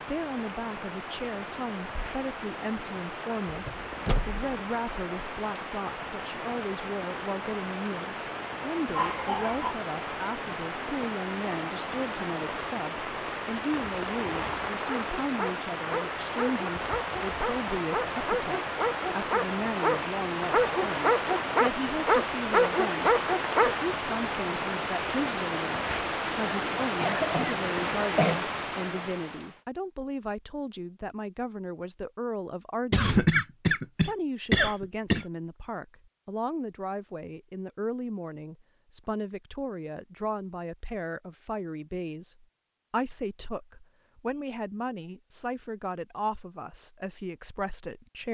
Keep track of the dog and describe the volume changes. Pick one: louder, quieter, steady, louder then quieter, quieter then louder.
louder.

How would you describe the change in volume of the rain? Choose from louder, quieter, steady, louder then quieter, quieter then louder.
louder.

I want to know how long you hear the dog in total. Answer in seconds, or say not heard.
9 s.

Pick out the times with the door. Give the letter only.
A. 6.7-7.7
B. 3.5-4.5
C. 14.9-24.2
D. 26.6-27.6
B.